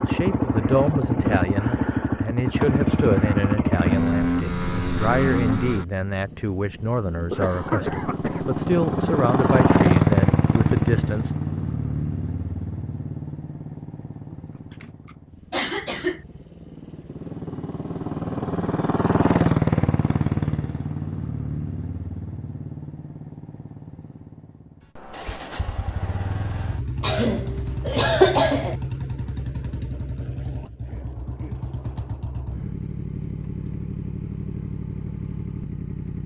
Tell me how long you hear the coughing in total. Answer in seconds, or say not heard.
5 s.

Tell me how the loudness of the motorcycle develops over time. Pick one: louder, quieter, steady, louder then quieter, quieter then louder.
quieter.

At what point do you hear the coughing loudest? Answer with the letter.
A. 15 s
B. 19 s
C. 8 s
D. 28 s
D.